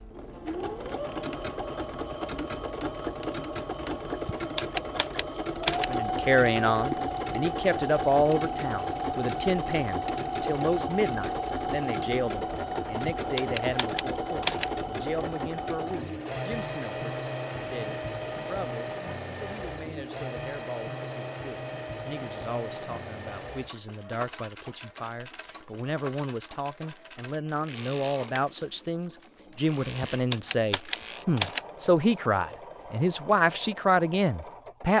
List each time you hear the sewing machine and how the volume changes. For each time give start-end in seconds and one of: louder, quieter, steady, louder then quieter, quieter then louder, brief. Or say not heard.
0.0-34.9 quieter.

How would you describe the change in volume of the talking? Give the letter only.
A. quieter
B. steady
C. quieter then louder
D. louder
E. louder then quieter
C.